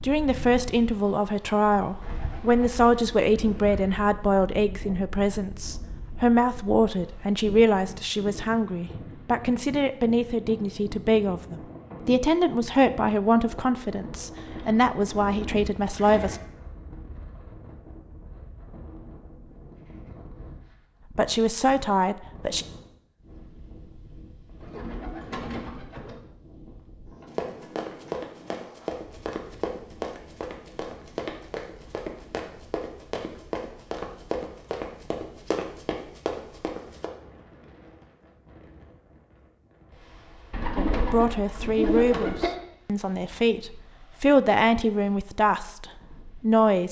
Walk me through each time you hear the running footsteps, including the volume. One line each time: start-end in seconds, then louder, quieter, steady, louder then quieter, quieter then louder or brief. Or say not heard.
27.2-37.1 steady.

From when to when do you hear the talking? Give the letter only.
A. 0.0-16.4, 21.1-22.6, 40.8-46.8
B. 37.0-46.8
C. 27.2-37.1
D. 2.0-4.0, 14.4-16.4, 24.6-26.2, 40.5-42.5
A.